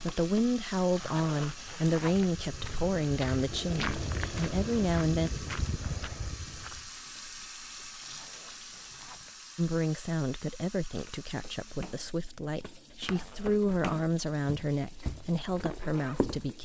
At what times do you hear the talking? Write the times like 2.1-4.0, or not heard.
0.0-5.3, 9.6-16.5.